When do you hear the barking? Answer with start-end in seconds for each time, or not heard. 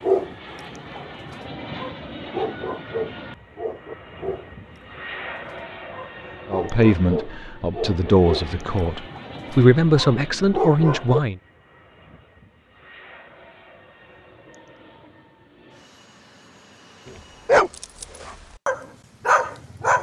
0.0-11.2, 17.4-19.9.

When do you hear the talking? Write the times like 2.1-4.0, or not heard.
6.5-11.4.